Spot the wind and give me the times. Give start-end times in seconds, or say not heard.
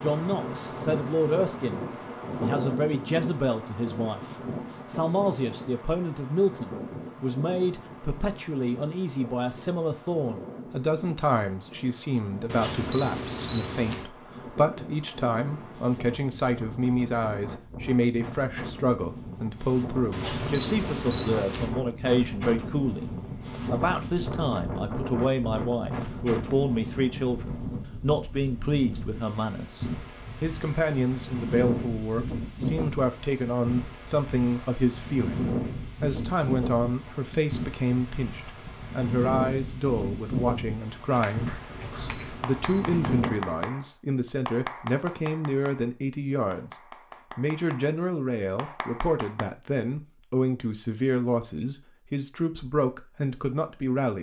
0.0-43.5.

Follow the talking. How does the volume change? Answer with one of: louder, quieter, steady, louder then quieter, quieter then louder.
steady.